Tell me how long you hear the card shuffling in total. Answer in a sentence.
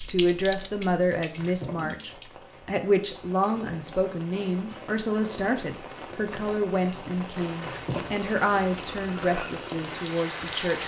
The card shuffling can be heard for 2 seconds in total.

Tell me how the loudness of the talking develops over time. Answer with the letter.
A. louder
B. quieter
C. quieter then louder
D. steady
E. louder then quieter
D.